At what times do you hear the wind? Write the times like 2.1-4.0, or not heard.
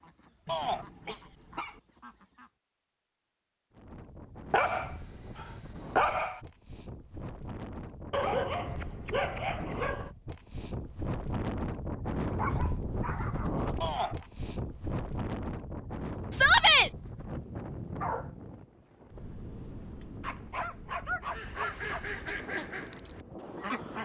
3.7-23.9.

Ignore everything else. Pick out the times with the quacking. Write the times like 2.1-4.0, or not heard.
0.0-2.5, 21.2-23.9.